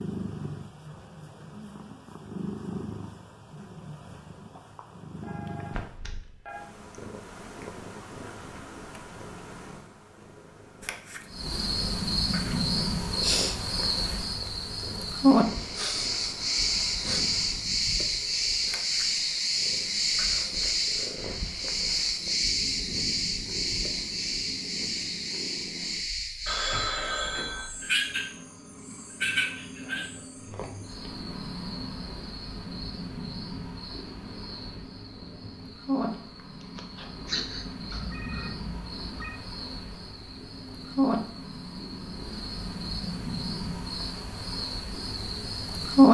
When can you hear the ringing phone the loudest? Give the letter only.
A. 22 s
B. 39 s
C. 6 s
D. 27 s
D.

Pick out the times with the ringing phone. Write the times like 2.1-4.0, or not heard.
5.2-6.6, 26.4-27.7, 37.9-39.4.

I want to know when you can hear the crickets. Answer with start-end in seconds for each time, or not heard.
11.3-46.0.